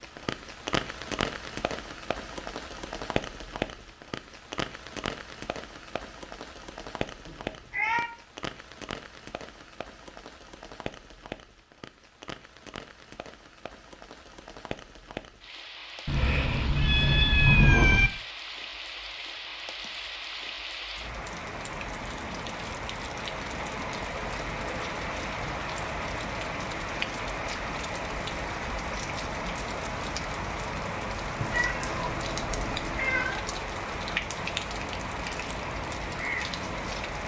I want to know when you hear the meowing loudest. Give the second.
18 s.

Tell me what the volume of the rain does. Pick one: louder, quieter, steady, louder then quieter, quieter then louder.
quieter then louder.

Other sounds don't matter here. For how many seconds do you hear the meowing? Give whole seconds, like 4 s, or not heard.
5 s.